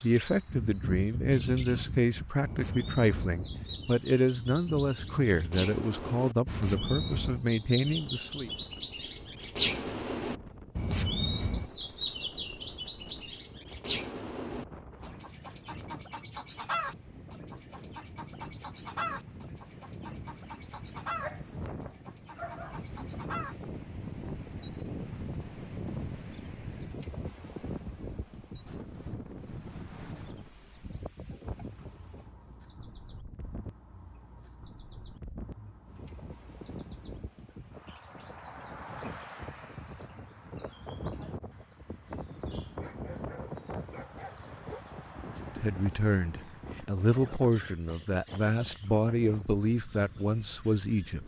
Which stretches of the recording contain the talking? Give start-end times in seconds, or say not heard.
0.0-8.5, 45.4-51.2.